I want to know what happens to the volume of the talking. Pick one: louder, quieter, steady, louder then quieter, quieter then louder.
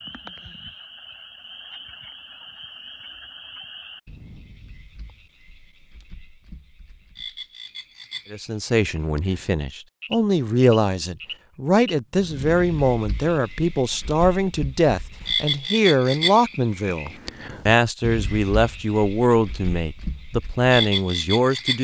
steady.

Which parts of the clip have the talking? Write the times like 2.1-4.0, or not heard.
8.3-21.7.